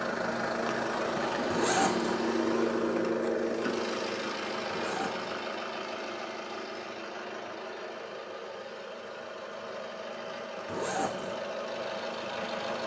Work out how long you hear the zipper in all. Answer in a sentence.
You can hear the zipper for 2 seconds altogether.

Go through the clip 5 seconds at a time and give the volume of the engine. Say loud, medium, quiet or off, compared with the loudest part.
loud, medium, medium.